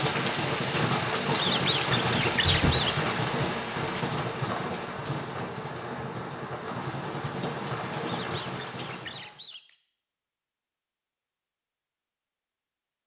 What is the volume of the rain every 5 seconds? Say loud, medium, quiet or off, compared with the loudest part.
loud, medium, off.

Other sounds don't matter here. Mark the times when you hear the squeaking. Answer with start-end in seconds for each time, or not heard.
1.4-3.1, 8.1-9.8.